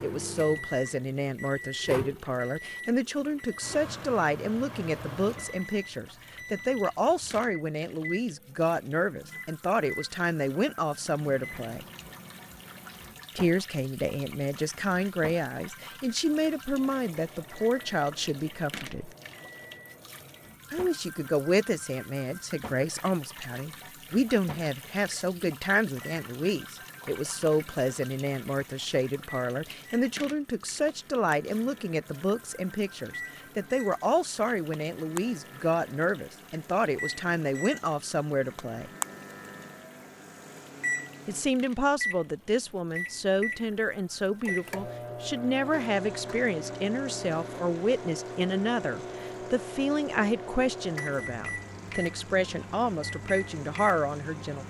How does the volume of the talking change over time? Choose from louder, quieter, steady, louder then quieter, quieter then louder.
steady.